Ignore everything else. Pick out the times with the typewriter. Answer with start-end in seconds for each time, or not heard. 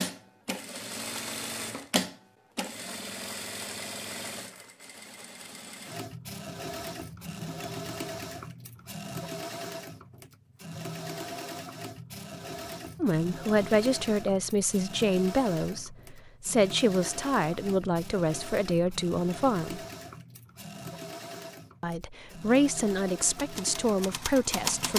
23.2-24.9.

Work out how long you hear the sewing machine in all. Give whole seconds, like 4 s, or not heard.
25 s.